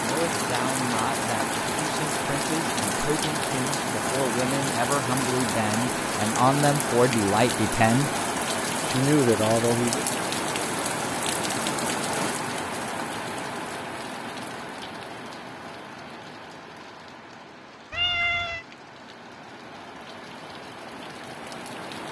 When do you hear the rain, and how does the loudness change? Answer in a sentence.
The rain can be heard from 0.0 to 22.0 s, getting quieter.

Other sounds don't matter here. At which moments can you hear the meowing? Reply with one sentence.
You can hear the meowing from 17.9 to 18.6 s.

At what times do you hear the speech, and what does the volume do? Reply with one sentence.
You can hear the speech from 0.0 to 8.1 s, getting louder; and briefly from 8.8 to 10.1 s.